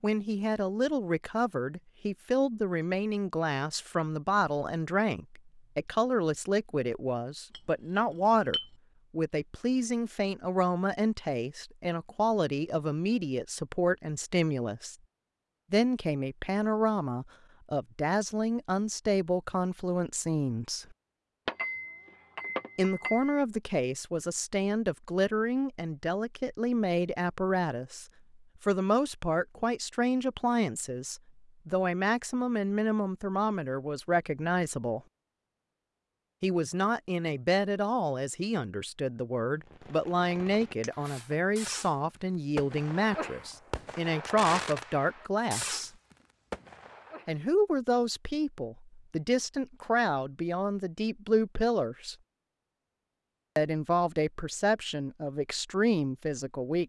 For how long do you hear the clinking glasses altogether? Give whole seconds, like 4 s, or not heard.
4 s.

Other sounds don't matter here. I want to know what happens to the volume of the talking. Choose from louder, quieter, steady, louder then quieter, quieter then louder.
steady.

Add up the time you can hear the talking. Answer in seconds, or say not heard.
50 s.